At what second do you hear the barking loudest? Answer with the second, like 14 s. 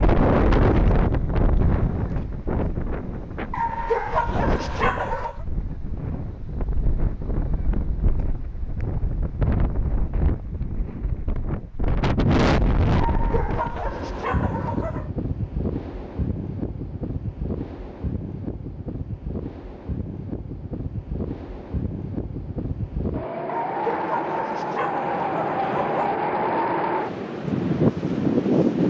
4 s.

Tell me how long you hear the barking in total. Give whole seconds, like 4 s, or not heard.
7 s.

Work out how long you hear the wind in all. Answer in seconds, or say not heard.
29 s.